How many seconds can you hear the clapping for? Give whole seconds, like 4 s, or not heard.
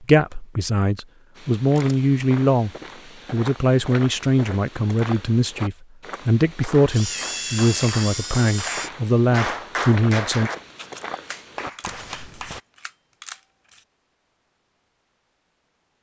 6 s.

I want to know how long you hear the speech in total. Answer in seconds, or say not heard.
10 s.